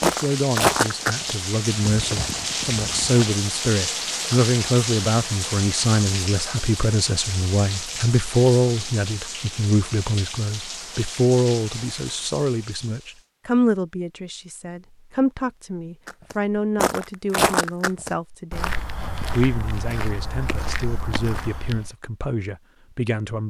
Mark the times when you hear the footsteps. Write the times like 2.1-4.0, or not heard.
0.0-3.3, 16.1-21.9.